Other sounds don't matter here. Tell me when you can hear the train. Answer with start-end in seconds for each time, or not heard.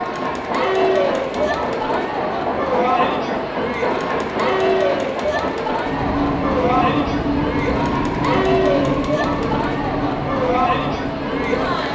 0.0-11.9.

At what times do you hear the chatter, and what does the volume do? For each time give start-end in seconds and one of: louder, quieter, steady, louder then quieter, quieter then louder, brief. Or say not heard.
0.0-11.9 steady.